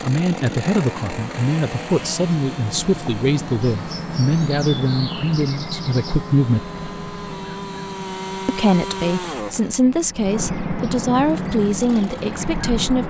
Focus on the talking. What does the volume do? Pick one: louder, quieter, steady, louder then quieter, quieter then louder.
steady.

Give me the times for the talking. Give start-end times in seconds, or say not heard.
0.0-6.7, 8.4-13.0.